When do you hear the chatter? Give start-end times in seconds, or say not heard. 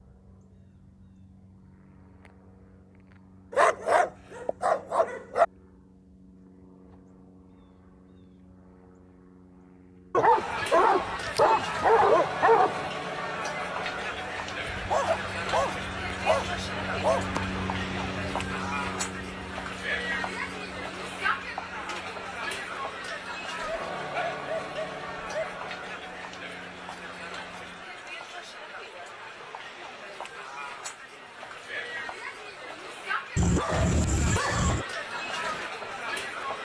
10.3-36.5.